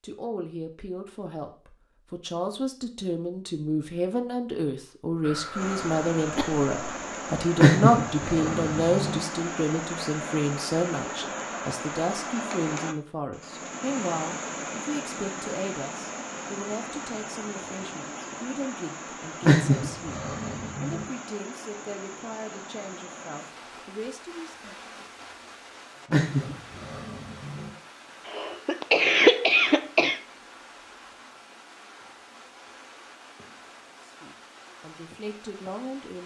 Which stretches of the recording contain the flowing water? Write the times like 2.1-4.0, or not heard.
5.5-36.2.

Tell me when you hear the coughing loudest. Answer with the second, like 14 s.
29 s.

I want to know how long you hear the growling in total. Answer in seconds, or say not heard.
5 s.